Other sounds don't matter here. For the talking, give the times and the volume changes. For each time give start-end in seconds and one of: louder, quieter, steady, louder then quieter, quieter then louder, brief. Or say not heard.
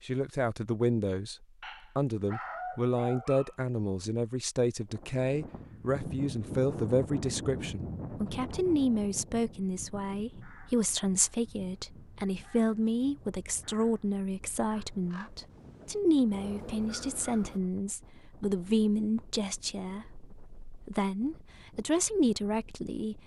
0.0-1.4 brief
1.9-23.2 steady.